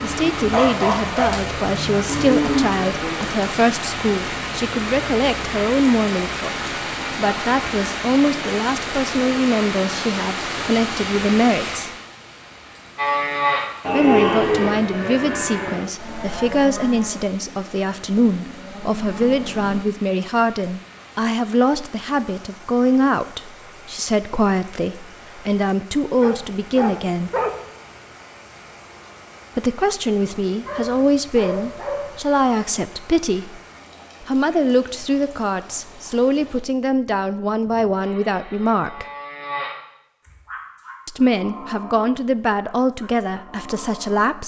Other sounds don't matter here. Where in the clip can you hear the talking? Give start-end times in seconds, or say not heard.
0.0-11.9, 13.9-27.3, 29.6-33.6, 34.2-39.0, 41.0-44.4.